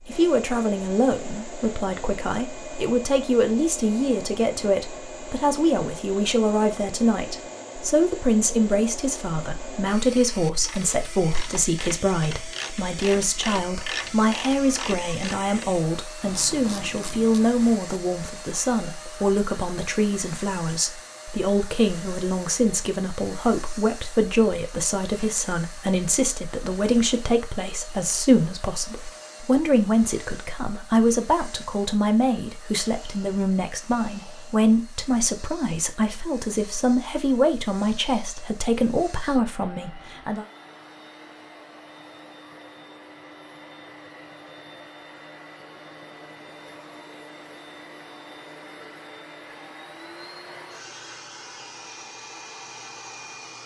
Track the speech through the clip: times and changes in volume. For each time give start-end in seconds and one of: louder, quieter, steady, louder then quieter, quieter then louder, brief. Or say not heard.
0.1-40.5 steady.